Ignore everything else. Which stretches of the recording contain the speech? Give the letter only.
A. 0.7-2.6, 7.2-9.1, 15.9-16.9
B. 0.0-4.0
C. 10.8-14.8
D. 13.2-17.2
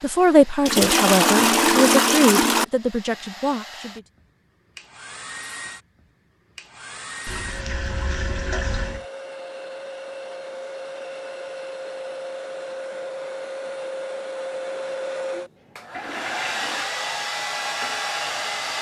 B.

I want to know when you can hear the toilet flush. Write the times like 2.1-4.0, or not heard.
0.7-2.6, 7.2-9.1, 15.9-16.9.